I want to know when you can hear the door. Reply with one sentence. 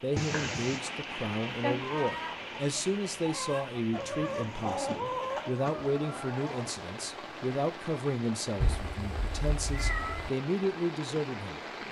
You can't hear the door here.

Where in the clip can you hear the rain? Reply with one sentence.
You can hear the rain from 0.0 to 11.8 s.